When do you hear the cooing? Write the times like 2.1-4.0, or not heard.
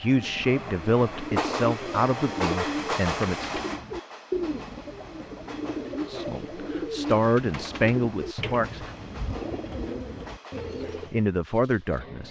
0.1-11.2.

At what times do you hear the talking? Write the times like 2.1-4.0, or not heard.
0.0-3.5, 6.0-8.9, 11.1-12.2.